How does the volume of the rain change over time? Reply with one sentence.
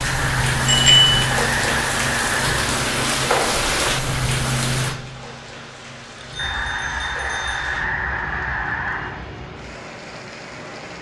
The volume of the rain goes down.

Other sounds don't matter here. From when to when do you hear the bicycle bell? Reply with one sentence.
The bicycle bell can be heard from 0.7 to 1.2 s and from 6.2 to 7.7 s.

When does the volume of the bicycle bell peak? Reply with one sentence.
The volume of the bicycle bell peaks at 1 second.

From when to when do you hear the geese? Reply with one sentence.
The geese can be heard from 0.0 to 2.7 s and from 6.3 to 9.2 s.